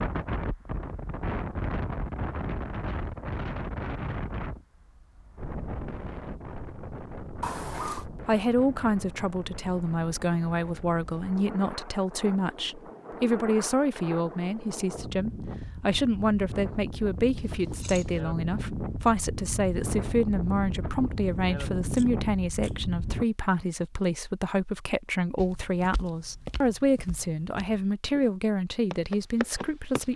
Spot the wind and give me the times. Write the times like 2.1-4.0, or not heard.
0.0-23.2.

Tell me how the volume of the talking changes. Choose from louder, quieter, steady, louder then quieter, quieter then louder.
steady.